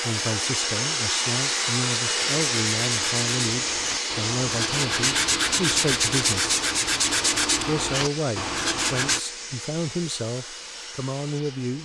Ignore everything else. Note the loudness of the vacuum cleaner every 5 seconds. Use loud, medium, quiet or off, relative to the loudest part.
loud, medium, quiet.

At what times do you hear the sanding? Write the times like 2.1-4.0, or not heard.
2.2-9.2.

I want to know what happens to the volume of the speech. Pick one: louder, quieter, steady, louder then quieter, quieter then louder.
steady.